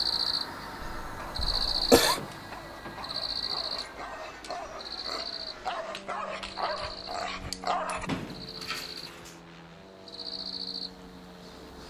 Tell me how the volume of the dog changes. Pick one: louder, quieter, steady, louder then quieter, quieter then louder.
louder.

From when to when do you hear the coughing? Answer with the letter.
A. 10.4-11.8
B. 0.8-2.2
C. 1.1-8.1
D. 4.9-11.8
B.